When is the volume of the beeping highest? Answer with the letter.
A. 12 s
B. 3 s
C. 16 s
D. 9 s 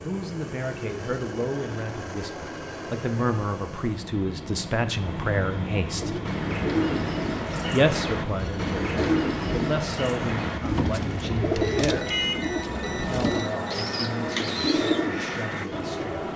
A.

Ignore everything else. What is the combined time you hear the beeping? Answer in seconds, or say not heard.
2 s.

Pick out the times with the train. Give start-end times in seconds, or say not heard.
0.0-16.3.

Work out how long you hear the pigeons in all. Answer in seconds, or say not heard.
10 s.